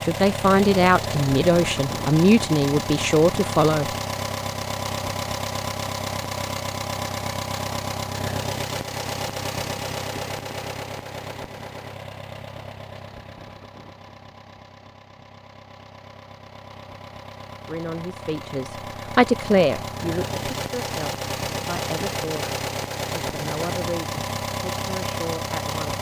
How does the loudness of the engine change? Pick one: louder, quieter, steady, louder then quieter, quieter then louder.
quieter then louder.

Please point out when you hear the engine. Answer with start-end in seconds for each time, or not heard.
0.0-25.9.